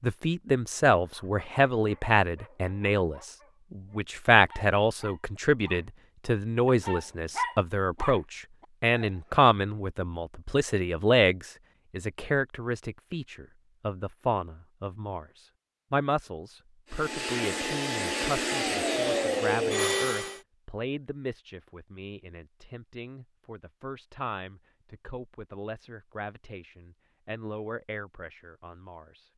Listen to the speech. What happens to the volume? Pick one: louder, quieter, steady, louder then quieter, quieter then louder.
quieter.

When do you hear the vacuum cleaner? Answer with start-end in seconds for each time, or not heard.
16.9-20.4.